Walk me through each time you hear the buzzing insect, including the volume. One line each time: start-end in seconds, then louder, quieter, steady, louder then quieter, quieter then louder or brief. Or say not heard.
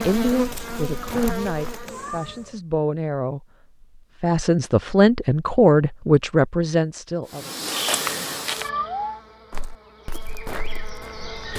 0.0-2.6 brief
7.2-11.5 quieter then louder.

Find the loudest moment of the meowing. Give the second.
9 s.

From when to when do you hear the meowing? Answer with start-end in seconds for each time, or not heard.
1.8-2.6, 8.6-9.7.